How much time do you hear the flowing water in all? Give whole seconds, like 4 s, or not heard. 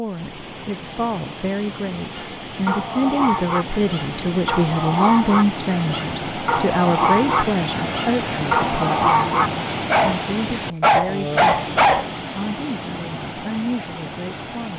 15 s.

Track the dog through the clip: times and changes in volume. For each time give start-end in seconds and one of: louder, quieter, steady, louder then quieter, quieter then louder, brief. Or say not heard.
2.1-12.1 louder.